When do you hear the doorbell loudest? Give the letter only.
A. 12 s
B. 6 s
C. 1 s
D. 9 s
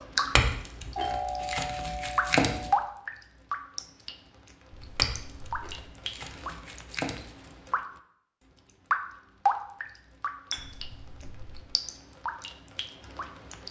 C.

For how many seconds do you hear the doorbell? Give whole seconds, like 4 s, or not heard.
4 s.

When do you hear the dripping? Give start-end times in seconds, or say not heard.
0.0-7.8, 8.9-13.6.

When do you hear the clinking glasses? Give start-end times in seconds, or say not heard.
0.3-2.7, 5.0-7.5, 10.5-11.4.